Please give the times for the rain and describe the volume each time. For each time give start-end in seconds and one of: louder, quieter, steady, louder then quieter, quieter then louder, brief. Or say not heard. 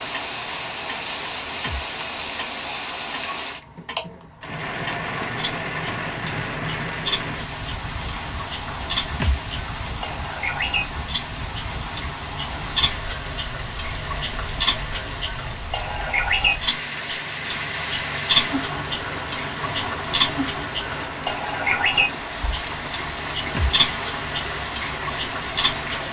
0.0-26.0 steady.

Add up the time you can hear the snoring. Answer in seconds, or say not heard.
not heard.